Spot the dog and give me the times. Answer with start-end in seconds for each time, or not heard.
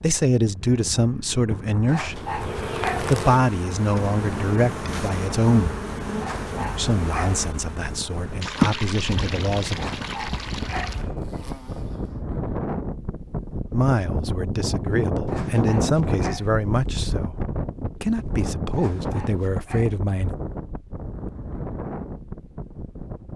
1.9-3.1, 6.2-7.4, 9.8-11.0, 15.2-16.5, 18.7-19.9.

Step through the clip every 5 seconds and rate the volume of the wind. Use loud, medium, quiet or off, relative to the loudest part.
medium, medium, loud, loud, medium.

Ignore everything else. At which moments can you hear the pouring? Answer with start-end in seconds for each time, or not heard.
8.4-11.1.